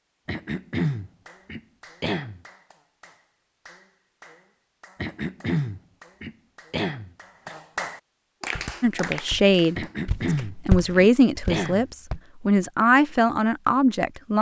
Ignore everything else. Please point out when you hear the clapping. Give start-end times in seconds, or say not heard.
1.2-10.5.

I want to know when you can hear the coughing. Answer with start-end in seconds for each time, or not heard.
0.2-2.4, 5.0-7.5, 9.8-11.8.